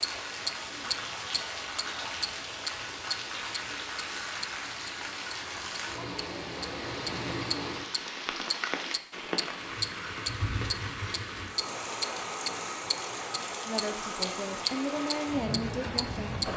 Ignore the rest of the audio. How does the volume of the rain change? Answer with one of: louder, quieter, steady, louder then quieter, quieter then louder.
steady.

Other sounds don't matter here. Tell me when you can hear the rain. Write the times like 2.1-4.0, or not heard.
0.0-16.5.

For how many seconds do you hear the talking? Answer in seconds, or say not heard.
3 s.